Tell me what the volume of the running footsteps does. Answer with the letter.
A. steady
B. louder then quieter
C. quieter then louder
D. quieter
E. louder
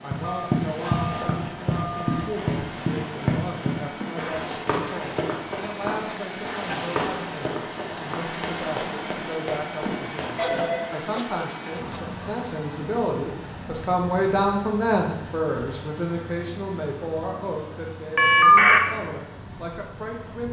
D.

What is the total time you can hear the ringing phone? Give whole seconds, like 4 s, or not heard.
3 s.